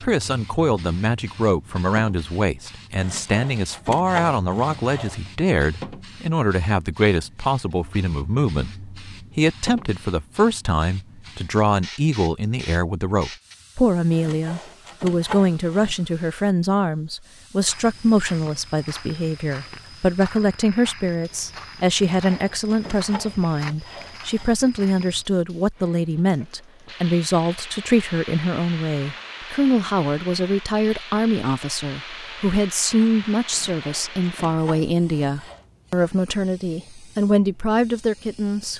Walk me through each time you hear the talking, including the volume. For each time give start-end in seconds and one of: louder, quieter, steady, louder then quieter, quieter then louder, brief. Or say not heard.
0.0-38.7 steady.